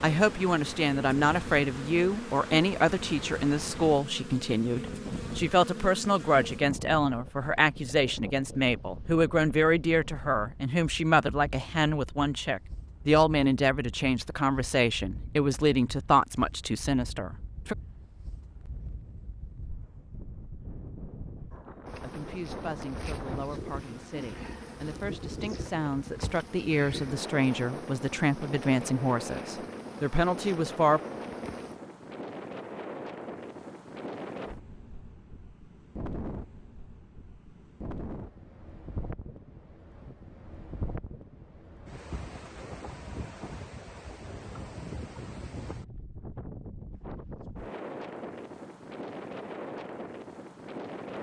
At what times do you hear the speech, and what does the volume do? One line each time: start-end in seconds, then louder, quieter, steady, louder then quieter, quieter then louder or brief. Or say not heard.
0.0-17.8 steady
22.0-31.0 louder.